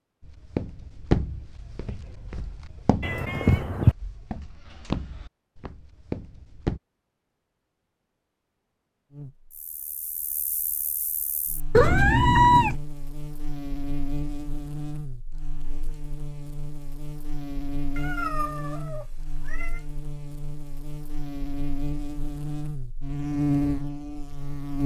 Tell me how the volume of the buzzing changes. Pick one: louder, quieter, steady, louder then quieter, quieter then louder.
louder.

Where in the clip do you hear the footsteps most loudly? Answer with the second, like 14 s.
1 s.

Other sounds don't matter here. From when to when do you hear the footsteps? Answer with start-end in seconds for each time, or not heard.
0.2-6.8.